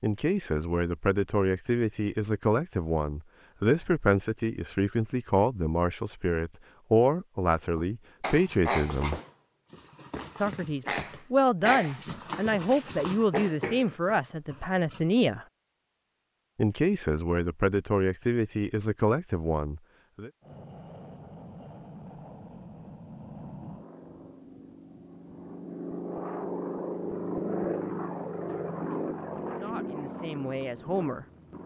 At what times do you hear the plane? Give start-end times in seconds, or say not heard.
20.4-31.6.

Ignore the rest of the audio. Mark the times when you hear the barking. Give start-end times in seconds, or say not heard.
7.8-15.1.